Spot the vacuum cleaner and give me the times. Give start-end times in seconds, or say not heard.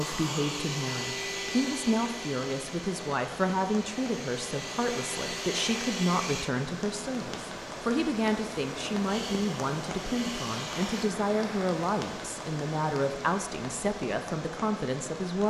0.0-6.5, 9.1-11.2.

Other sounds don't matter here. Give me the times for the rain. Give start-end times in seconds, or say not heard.
0.0-15.4.